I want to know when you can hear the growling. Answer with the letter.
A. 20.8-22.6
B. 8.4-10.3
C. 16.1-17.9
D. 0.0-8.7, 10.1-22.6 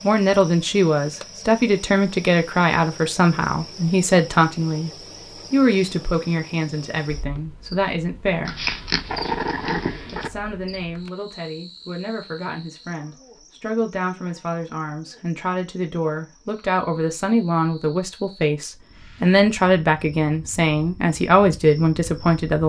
B.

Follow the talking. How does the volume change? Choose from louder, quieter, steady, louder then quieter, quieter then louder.
quieter then louder.